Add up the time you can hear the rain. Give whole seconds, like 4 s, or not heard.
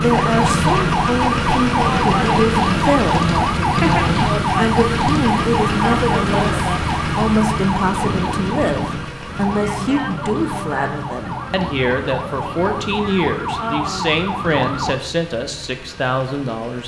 not heard.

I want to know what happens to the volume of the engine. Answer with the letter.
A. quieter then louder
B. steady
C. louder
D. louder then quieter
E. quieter
E.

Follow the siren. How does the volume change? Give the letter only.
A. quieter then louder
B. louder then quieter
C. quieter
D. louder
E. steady
C.